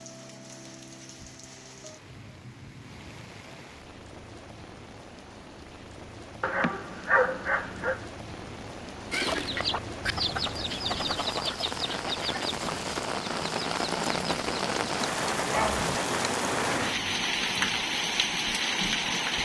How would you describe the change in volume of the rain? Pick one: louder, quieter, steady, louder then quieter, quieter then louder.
louder.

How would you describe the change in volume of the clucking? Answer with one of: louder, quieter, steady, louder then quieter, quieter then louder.
quieter.